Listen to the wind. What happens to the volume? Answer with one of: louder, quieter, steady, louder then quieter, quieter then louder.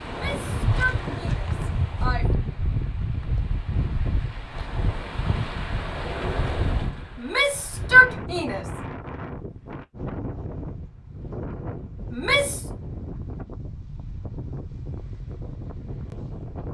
quieter.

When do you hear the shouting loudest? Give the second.
8 s.